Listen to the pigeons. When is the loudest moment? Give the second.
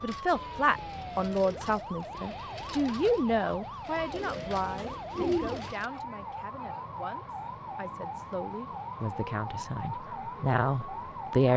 5 s.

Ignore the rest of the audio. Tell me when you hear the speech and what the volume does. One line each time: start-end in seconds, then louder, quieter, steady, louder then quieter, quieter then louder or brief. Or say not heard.
0.0-11.5 quieter then louder.